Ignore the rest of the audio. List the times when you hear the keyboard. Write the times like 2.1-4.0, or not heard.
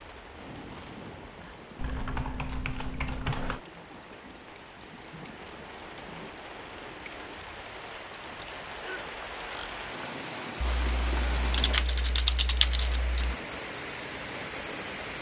1.8-3.6, 10.6-13.3.